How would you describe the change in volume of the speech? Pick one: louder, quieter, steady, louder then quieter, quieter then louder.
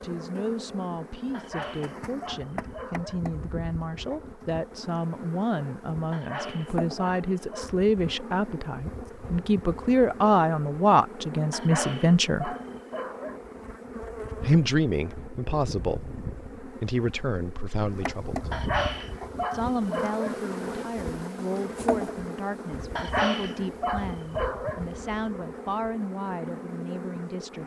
louder then quieter.